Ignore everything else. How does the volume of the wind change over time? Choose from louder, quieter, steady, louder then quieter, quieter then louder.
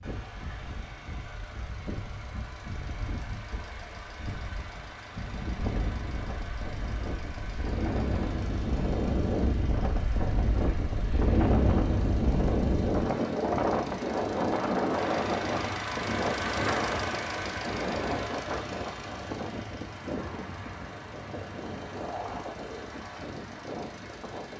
louder then quieter.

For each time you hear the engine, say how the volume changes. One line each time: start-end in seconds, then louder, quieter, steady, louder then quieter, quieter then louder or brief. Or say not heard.
0.0-24.5 louder then quieter.